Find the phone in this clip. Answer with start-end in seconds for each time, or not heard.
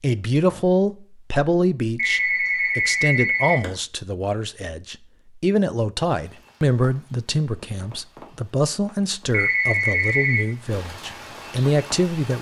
1.9-3.7, 9.3-10.4.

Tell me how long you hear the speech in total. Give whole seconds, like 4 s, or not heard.
12 s.